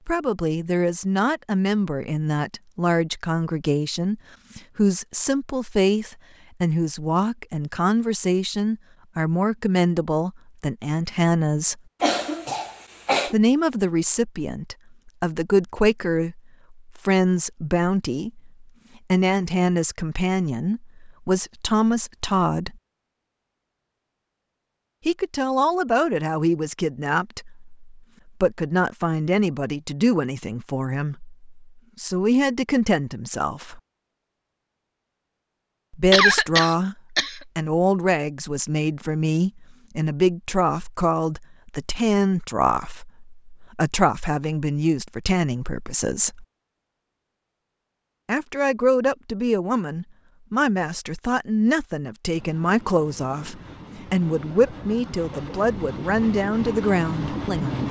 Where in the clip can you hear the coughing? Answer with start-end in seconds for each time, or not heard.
12.0-13.3, 36.1-37.4.